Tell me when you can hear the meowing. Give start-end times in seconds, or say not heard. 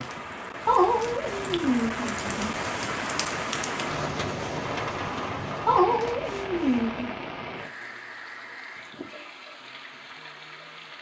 0.7-2.5, 5.7-7.1.